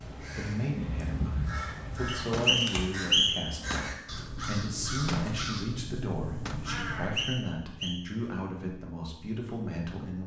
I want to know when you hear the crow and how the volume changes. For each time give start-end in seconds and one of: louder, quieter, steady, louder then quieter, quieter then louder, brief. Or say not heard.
0.0-7.3 steady.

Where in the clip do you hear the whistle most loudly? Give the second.
3 s.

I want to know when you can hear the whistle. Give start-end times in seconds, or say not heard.
2.0-3.5, 7.0-8.0.